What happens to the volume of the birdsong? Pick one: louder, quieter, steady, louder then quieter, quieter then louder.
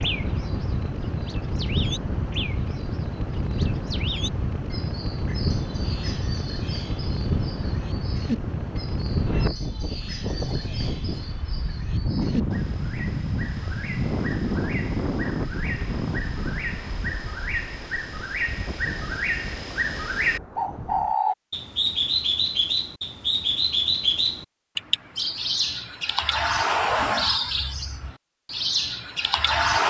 louder.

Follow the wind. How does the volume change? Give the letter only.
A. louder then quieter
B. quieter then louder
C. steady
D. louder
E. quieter
E.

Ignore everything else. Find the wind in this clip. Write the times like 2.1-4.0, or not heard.
0.0-21.1.